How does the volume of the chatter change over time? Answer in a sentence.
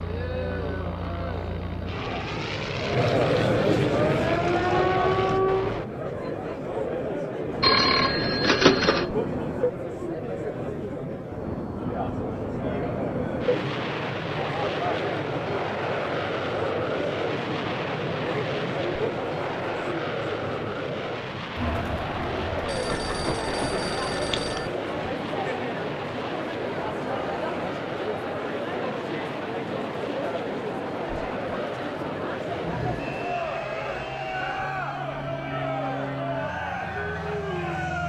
The volume of the chatter stays about the same.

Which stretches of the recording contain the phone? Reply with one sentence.
You can hear the phone from 7.6 to 9.1 s and from 22.6 to 24.7 s.